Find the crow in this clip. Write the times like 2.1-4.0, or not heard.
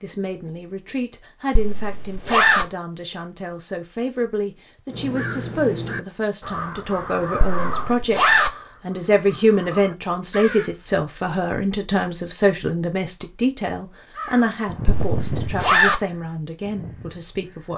4.9-10.8, 14.1-17.7.